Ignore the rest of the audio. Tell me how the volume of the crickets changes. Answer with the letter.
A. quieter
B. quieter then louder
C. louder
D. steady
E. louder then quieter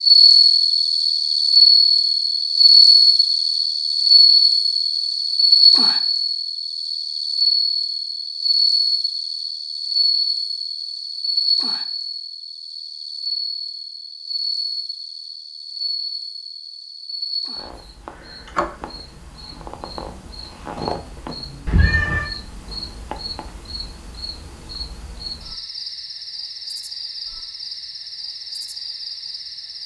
A.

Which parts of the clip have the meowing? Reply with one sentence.
The meowing can be heard from 21.6 to 22.2 s.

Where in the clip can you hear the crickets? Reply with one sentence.
The crickets can be heard from 0.0 to 29.8 s.